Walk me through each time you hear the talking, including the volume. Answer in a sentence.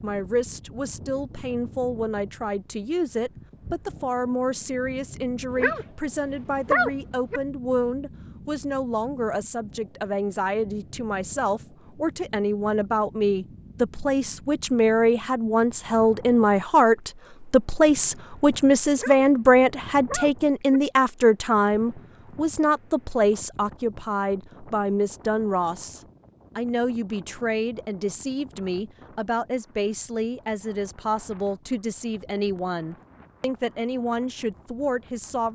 You can hear the talking from 0.0 to 35.4 s, getting louder then quieter.